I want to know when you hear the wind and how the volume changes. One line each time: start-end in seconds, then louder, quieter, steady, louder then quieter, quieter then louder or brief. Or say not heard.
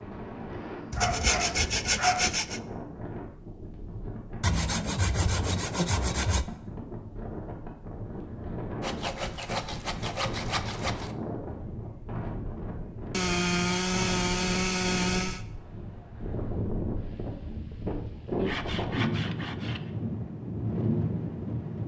0.0-21.8 louder.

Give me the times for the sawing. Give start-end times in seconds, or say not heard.
0.9-2.6, 4.4-6.5, 8.8-11.2, 13.1-15.4, 18.4-19.8.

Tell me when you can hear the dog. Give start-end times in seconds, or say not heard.
0.9-2.3.